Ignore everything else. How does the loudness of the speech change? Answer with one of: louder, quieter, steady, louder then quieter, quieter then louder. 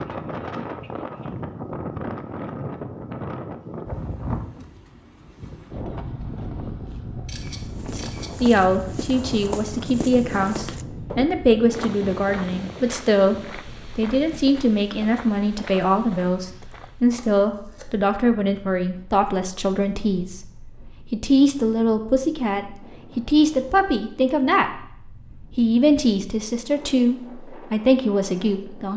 steady.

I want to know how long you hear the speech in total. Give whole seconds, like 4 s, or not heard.
20 s.